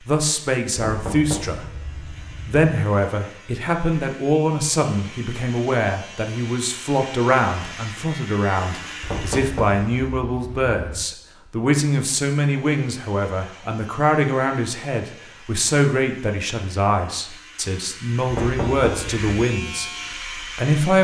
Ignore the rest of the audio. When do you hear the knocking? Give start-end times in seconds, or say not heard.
0.8-2.6, 9.0-11.1, 18.3-19.2.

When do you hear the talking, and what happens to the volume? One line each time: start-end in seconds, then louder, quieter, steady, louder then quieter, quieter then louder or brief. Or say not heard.
0.1-1.6 brief
2.5-21.0 steady.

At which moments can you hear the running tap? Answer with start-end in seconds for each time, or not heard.
not heard.